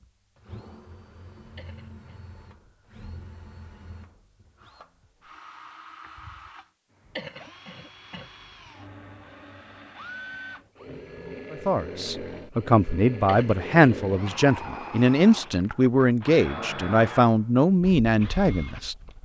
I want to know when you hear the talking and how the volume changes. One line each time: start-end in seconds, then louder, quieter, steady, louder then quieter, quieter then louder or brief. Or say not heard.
11.5-18.9 steady.